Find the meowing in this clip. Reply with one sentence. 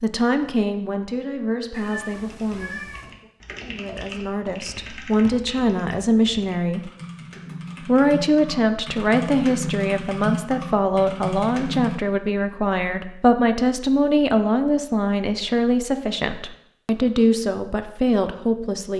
The meowing can be heard from 1.7 to 3.1 s.